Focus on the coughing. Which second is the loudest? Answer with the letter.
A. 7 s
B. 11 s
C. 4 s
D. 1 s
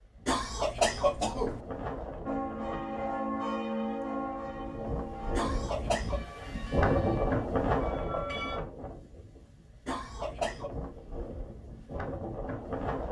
D.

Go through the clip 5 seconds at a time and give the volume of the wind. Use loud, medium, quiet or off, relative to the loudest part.
medium, loud, medium.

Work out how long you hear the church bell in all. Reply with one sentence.
You can hear the church bell for 6 seconds altogether.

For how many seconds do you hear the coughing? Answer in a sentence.
The coughing can be heard for 3 seconds in total.